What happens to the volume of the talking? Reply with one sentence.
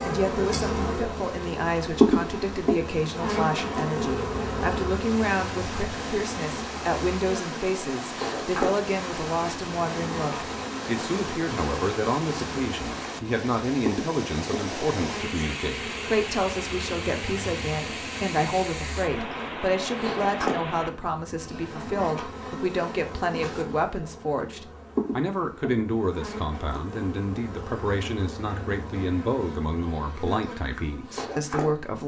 The volume of the talking stays about the same.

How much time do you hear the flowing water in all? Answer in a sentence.
The flowing water can be heard for 21 seconds in total.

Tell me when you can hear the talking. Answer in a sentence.
The talking can be heard from 0.0 to 32.0 s.